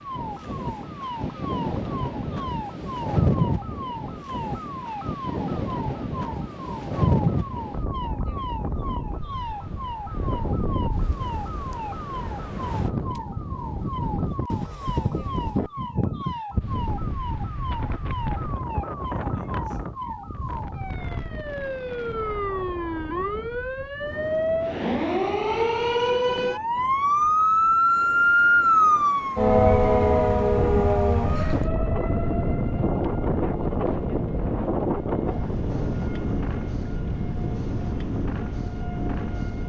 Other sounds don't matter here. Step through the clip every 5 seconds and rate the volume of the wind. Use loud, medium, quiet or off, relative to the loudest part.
loud, loud, loud, loud, medium, quiet, loud, loud.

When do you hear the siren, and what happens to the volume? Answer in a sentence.
You can hear the siren from 0.0 to 39.6 s, getting louder then quieter.